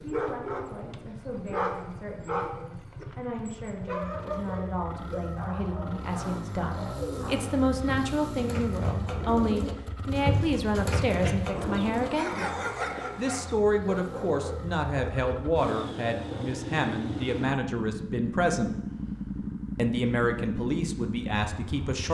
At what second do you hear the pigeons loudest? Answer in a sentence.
The volume of the pigeons peaks at 10 seconds.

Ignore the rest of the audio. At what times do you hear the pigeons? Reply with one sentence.
You can hear the pigeons from 7.0 to 12.6 s.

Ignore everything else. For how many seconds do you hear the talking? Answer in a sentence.
You can hear the talking for 20 seconds altogether.